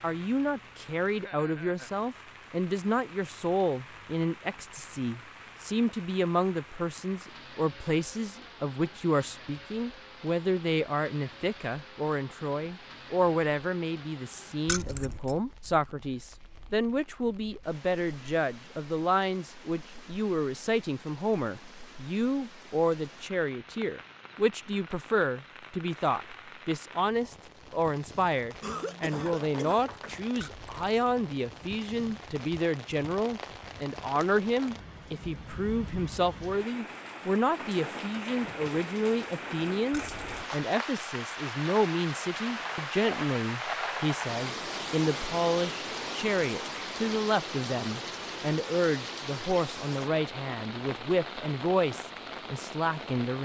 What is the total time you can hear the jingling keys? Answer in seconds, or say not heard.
2 s.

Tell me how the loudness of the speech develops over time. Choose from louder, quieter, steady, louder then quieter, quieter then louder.
steady.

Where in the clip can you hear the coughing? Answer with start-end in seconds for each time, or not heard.
28.6-30.2.